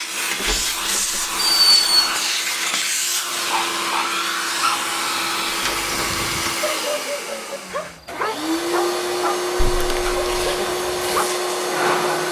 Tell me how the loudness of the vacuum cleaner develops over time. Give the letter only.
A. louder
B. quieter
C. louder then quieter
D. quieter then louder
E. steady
E.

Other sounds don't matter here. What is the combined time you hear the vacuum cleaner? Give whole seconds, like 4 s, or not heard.
12 s.